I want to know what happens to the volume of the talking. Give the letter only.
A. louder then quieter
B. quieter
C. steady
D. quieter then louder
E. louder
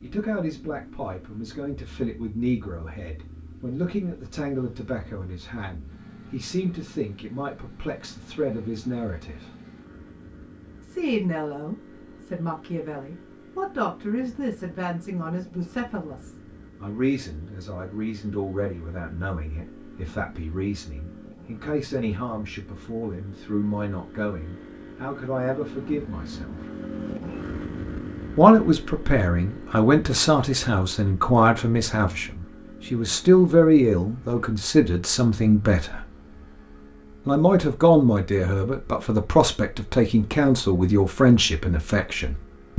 E.